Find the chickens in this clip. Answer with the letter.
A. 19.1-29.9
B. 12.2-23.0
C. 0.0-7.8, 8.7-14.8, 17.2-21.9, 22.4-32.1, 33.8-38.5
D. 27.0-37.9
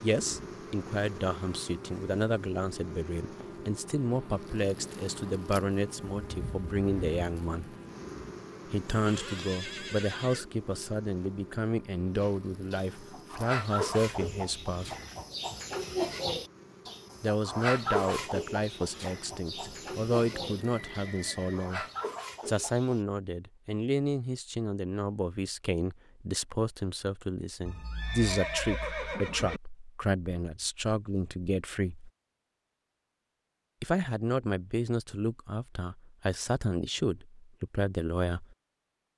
B.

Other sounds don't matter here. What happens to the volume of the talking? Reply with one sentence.
The loudness of the talking stays about the same.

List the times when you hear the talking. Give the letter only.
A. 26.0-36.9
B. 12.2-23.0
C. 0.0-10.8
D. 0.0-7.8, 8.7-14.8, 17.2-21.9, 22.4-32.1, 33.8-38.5
D.